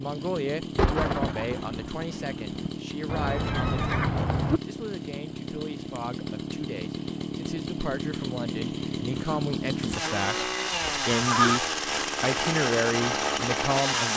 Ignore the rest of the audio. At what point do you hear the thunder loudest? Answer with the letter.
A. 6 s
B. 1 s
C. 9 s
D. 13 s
B.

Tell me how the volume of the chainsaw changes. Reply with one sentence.
The volume of the chainsaw goes up.